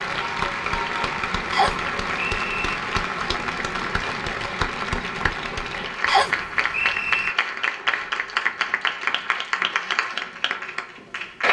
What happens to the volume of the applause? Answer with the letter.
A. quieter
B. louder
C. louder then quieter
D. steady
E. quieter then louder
D.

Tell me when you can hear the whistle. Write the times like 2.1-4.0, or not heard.
1.5-2.8, 6.0-7.3.